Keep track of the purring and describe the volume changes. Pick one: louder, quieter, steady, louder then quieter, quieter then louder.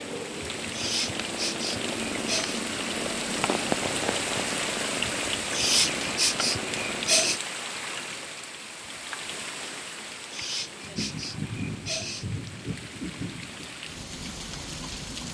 louder then quieter.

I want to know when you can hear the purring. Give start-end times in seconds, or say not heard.
0.0-7.4.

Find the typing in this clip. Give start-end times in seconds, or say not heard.
not heard.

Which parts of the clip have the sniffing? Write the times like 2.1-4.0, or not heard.
0.7-2.6, 5.5-7.4, 10.3-12.2.